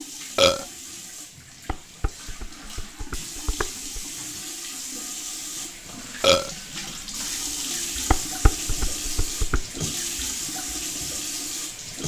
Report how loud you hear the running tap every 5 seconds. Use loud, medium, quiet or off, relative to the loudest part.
medium, loud, loud.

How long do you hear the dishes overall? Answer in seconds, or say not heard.
4 s.